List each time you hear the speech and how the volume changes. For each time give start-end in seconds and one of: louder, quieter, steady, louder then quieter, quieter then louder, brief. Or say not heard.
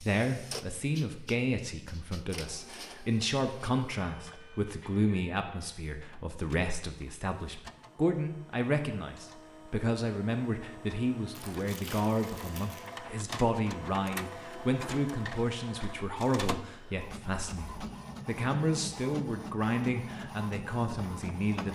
0.0-21.7 steady.